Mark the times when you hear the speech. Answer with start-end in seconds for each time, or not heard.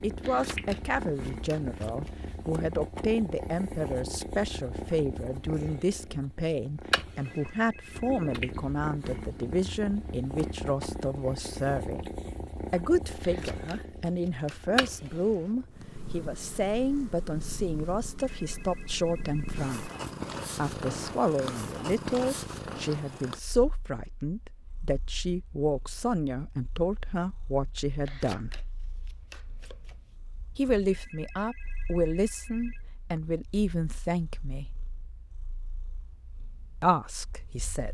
0.0-12.1, 12.7-19.9, 20.6-28.6, 30.6-34.7, 36.8-37.9.